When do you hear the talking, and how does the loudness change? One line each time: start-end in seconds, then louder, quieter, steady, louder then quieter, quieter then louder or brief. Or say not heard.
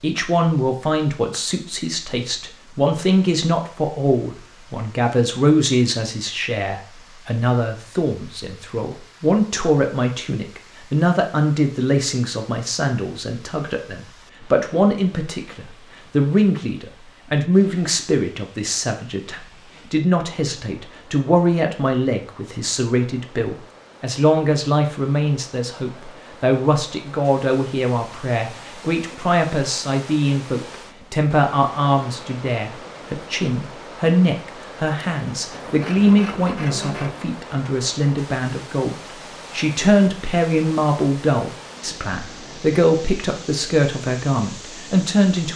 0.0-45.5 steady.